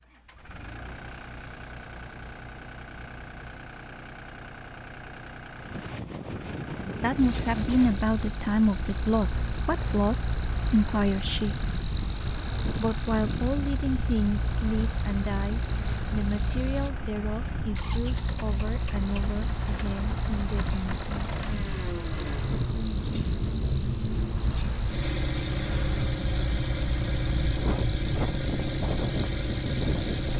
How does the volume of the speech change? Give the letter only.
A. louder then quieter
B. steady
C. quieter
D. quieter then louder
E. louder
C.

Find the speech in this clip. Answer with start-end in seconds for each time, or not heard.
7.0-11.6, 12.8-21.1.